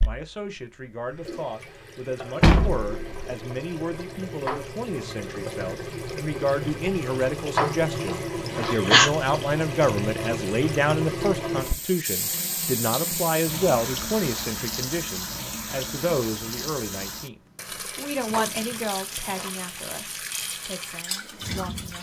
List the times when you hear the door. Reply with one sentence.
You can hear the door from 2.4 to 3.4 s.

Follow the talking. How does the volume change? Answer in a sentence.
The loudness of the talking goes up, then down.